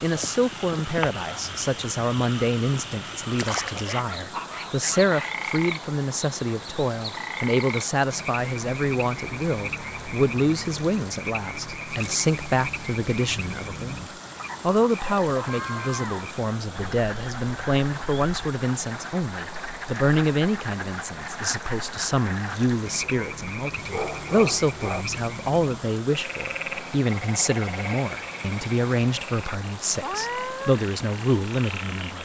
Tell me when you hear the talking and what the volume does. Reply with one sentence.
The talking can be heard from 0.0 to 14.0 s, at a steady volume; and from 14.6 to 32.2 s, at a steady volume.